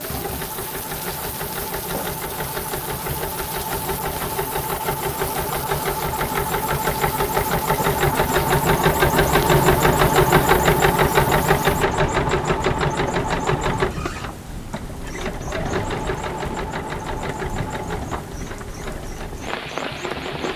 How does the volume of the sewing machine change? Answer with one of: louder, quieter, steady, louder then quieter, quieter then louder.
louder then quieter.